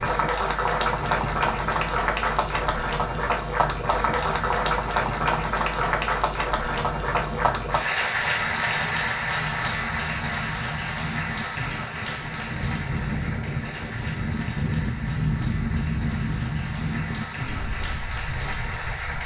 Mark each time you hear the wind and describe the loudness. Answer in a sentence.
You can hear the wind from 0.0 to 19.2 s, getting louder.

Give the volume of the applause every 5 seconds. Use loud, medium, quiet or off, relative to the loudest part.
loud, loud, medium, medium.